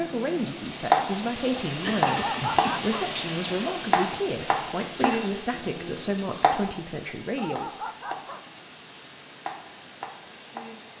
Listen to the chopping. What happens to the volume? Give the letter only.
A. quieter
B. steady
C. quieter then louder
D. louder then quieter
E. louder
A.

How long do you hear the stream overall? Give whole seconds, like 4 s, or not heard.
11 s.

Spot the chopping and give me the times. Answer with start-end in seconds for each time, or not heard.
0.0-10.9.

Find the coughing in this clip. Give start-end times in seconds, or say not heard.
1.8-2.8.